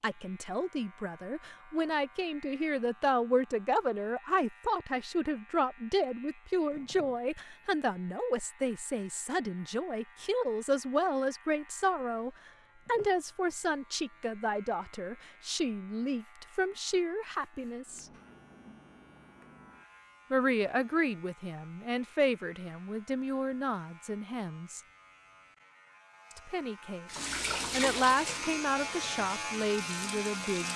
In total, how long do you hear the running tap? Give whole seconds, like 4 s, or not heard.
4 s.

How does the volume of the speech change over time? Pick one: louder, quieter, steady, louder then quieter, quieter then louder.
steady.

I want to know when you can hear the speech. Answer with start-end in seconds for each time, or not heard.
0.0-18.1, 20.3-24.8, 26.4-30.7.